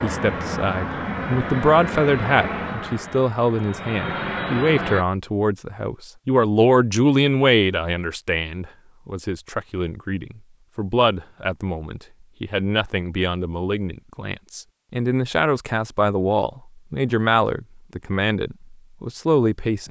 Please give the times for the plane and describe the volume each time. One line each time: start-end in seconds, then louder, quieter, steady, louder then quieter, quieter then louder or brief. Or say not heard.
0.0-5.0 quieter then louder.